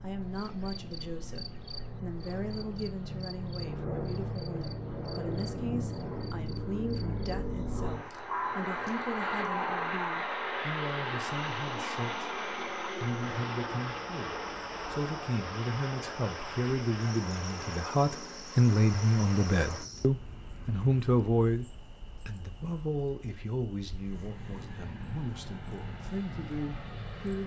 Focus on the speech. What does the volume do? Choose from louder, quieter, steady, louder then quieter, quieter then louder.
louder then quieter.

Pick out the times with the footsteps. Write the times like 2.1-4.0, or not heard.
not heard.